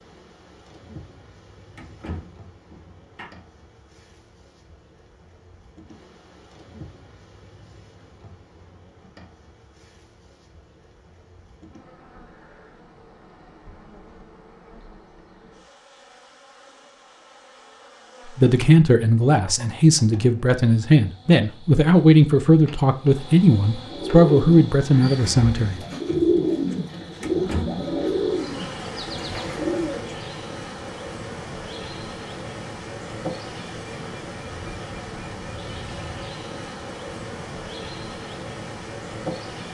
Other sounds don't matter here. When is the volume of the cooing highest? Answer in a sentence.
The loudest moment of the cooing is at 26 seconds.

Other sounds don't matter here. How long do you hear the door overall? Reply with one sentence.
The door can be heard for 3 seconds in total.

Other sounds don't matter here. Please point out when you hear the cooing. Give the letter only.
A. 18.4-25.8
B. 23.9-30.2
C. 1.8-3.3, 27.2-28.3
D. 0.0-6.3
B.